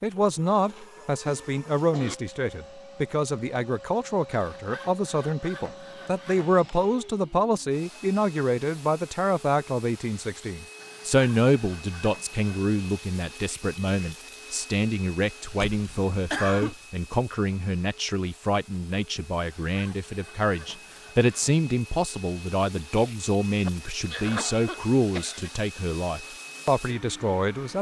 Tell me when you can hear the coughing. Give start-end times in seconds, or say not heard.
0.1-2.1, 15.6-16.8, 23.6-25.5.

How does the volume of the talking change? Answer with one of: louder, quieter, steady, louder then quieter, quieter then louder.
steady.